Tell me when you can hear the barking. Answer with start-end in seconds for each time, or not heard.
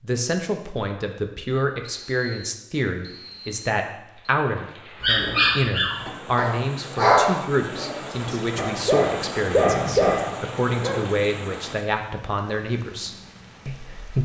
5.0-11.0.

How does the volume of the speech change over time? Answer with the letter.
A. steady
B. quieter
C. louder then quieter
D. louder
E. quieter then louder
A.